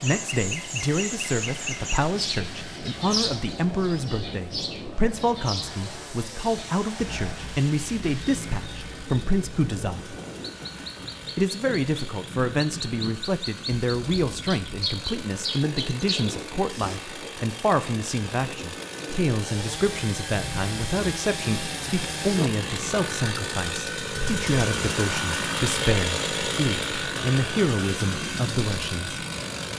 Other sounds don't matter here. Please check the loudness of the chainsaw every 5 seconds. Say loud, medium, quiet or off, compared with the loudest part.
quiet, quiet, quiet, medium, loud, loud.